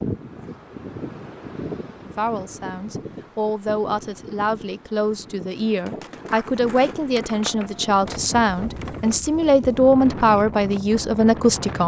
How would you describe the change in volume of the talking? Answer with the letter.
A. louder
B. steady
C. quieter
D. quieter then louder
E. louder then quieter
A.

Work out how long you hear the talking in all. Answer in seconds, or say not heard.
10 s.